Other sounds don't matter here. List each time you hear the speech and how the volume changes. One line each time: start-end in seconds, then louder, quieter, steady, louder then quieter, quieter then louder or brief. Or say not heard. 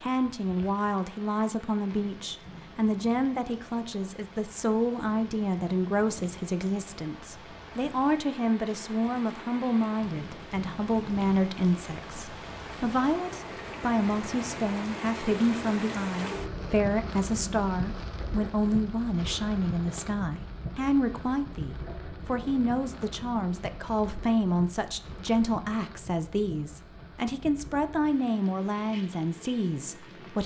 0.0-30.4 steady.